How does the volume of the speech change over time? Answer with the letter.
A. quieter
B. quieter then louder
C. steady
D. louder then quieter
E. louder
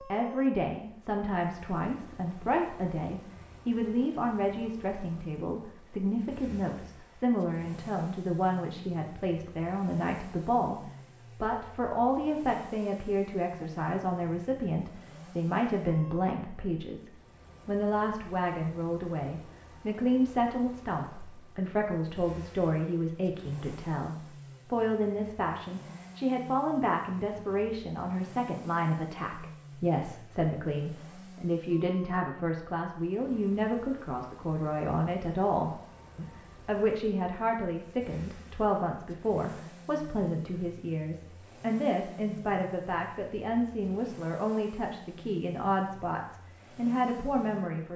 C.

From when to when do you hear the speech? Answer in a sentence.
You can hear the speech from 0.0 to 47.9 s.